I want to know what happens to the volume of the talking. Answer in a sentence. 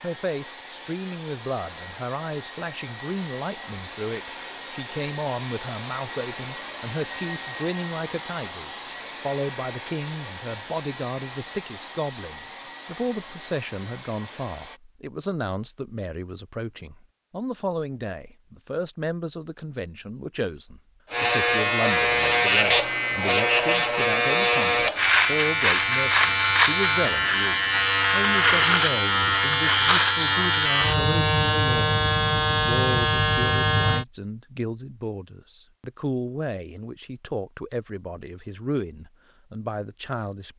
The volume of the talking stays about the same.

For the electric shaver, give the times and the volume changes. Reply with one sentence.
The electric shaver can be heard from 21.1 to 34.0 s, at a steady volume.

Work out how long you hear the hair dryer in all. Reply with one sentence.
The hair dryer can be heard for 15 seconds in total.